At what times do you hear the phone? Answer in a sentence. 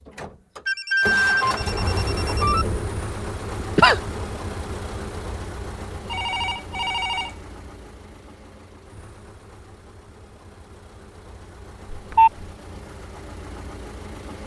The phone can be heard from 0.7 to 2.6 s, from 6.0 to 7.3 s and from 11.9 to 12.4 s.